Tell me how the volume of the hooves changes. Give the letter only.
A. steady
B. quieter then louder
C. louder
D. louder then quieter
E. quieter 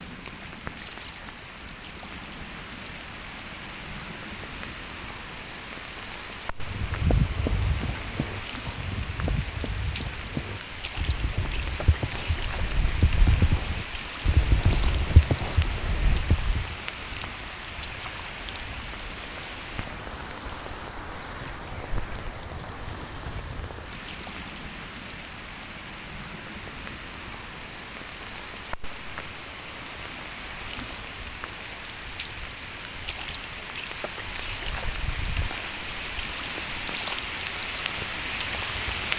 B.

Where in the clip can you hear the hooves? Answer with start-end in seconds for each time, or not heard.
6.6-16.8.